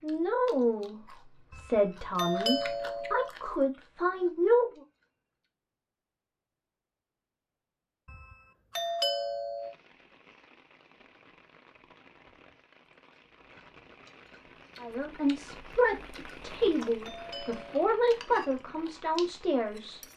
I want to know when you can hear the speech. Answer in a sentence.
You can hear the speech from 0.0 to 4.8 s and from 14.8 to 20.0 s.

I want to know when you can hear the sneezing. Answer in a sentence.
The sneezing can't be heard in this clip.